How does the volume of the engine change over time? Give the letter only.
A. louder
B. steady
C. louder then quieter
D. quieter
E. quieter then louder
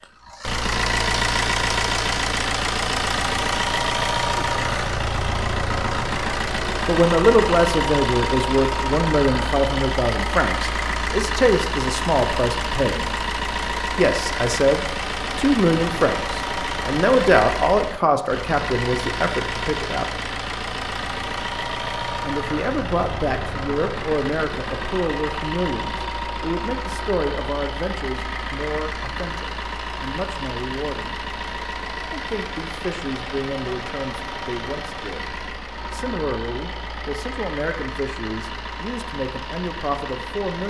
D.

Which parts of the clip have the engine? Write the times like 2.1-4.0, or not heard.
0.0-40.6.